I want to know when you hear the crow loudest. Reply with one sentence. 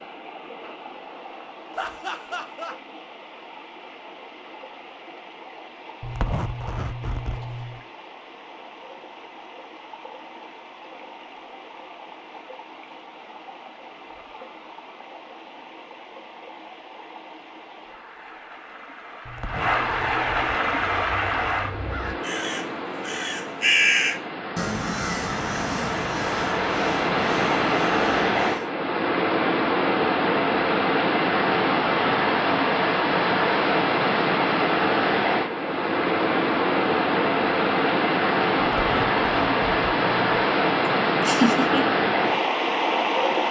The volume of the crow peaks at 24 seconds.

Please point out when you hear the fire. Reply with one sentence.
You can't hear the fire here.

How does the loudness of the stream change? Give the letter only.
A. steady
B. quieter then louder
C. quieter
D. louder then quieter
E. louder
E.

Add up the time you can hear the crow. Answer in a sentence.
The crow can be heard for 8 seconds in total.